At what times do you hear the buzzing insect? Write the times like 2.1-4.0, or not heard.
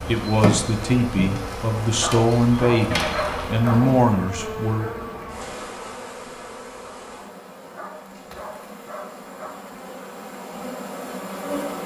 0.0-11.8.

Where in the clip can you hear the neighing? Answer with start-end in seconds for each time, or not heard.
2.9-3.5.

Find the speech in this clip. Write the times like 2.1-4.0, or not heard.
0.1-4.9.